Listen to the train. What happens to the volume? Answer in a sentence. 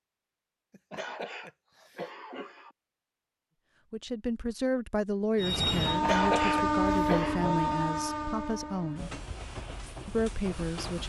The loudness of the train goes down.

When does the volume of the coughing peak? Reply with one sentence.
The volume of the coughing peaks at 6 seconds.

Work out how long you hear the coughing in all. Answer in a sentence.
The coughing can be heard for 4 seconds in total.